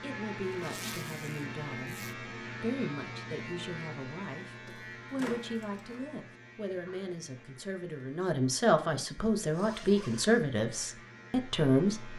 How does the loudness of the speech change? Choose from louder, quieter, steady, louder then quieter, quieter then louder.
louder.